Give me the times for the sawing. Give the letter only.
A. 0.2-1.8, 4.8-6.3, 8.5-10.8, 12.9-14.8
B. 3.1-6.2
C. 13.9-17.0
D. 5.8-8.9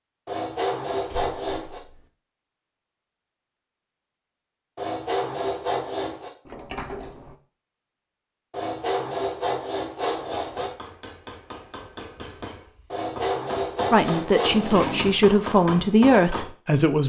A.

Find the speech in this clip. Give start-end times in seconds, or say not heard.
13.9-17.0.